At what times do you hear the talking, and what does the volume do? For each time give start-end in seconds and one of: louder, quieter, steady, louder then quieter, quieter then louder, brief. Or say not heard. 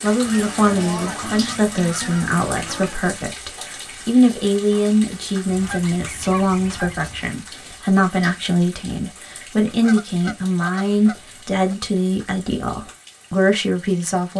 0.0-14.3 steady.